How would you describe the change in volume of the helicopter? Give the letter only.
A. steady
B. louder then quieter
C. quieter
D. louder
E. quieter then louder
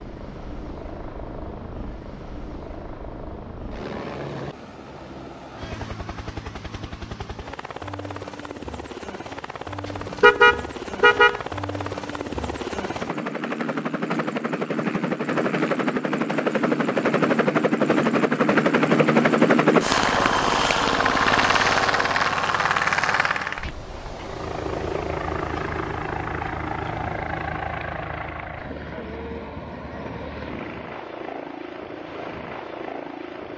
B.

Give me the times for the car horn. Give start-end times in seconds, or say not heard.
10.2-11.4.